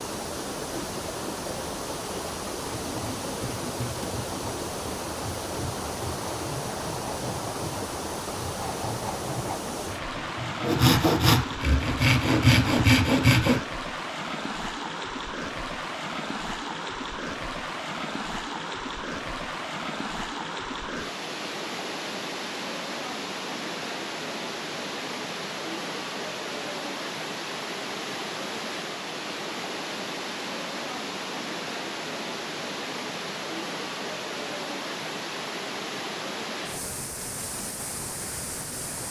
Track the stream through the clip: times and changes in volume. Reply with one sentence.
The stream can be heard from 0.0 to 39.0 s, at a steady volume.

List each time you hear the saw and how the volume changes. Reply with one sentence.
The saw can be heard from 2.8 to 13.6 s, getting louder.